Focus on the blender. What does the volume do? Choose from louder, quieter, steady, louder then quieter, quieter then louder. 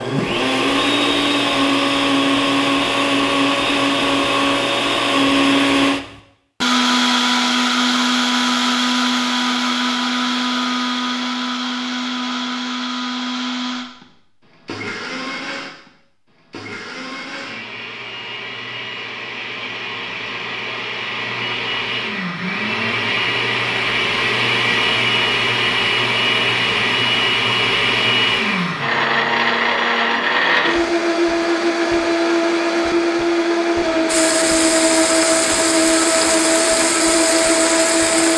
quieter then louder.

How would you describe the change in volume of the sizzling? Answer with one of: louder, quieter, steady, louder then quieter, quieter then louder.
steady.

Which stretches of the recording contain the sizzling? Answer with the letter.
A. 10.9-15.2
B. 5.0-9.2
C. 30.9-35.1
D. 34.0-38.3
D.